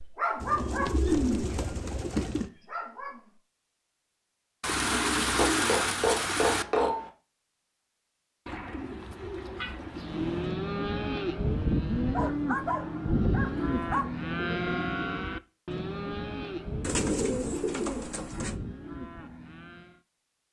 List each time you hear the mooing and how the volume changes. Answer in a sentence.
The mooing can be heard from 9.9 to 20.0 s, getting quieter.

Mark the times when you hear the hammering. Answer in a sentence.
The hammering can be heard from 5.3 to 7.1 s.